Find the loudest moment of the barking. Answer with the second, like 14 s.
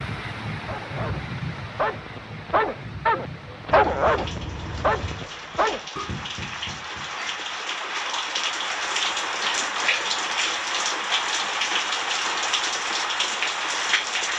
4 s.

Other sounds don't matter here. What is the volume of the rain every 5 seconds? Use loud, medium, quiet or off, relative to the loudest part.
medium, loud, loud.